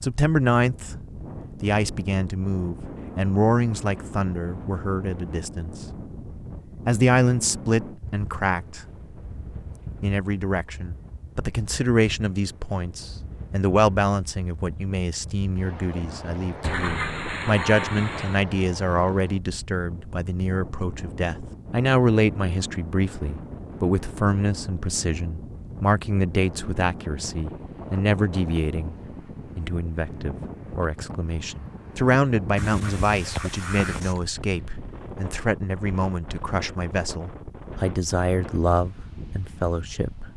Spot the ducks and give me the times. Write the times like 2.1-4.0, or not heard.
16.6-18.4, 32.5-34.2.